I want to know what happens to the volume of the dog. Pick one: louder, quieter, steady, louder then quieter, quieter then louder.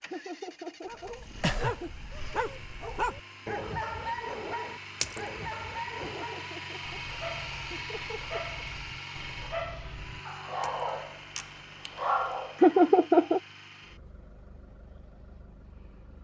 quieter then louder.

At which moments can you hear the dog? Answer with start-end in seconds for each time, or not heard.
0.8-12.6.